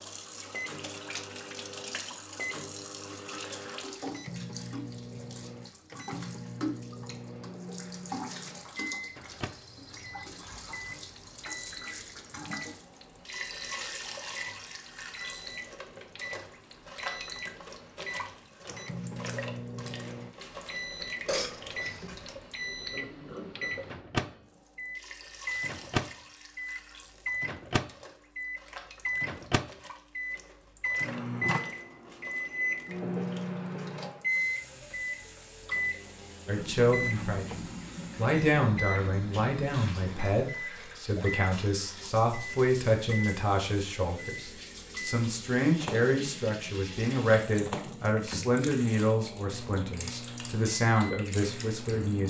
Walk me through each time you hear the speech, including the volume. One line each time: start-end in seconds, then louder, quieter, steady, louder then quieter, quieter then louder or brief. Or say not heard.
36.5-52.2 steady.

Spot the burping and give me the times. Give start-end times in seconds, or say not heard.
21.2-22.4.